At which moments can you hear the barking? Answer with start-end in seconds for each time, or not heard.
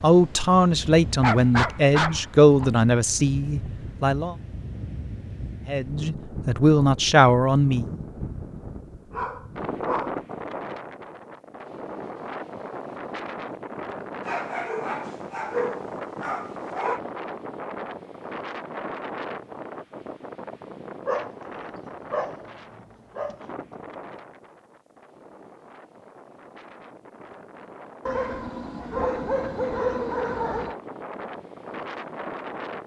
1.2-2.8, 9.1-10.2, 14.2-17.0, 21.1-23.5, 28.1-30.8.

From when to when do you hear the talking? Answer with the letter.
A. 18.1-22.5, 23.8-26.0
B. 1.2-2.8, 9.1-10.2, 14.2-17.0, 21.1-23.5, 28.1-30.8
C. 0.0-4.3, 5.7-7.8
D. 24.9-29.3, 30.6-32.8
C.